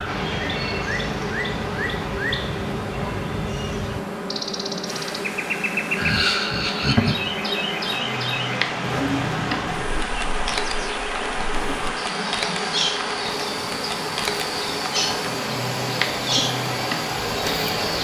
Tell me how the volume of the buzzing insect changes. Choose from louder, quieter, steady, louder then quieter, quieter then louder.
steady.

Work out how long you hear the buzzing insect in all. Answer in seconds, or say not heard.
18 s.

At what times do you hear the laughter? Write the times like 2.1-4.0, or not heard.
6.0-7.3.